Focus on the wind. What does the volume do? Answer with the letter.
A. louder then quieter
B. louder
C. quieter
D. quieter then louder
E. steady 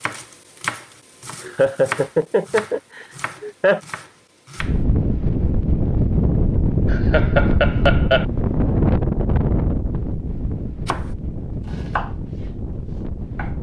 C.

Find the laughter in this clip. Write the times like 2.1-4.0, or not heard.
1.4-3.8, 6.9-8.2.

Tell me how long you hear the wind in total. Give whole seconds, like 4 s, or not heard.
9 s.